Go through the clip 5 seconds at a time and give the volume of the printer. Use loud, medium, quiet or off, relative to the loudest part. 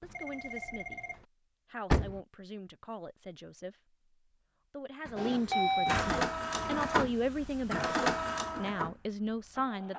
off, loud.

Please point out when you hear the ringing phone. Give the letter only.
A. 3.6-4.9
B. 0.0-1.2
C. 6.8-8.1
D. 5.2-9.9
B.